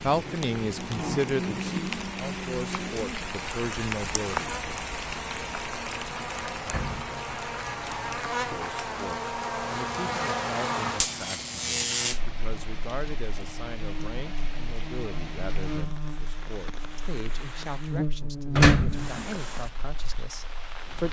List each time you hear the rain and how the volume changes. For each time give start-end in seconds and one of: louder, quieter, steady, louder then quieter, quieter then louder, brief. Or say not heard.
0.0-21.0 quieter.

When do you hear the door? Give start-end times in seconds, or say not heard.
6.7-7.2, 18.6-19.2.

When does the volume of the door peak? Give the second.
19 s.